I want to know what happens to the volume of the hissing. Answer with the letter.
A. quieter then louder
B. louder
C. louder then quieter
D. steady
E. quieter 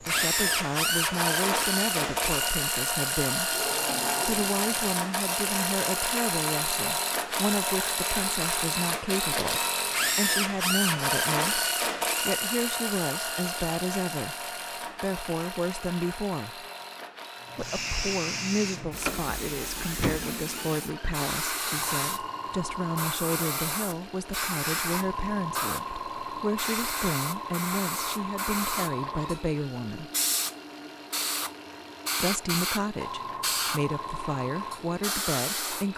D.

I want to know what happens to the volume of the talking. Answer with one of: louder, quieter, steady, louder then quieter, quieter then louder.
steady.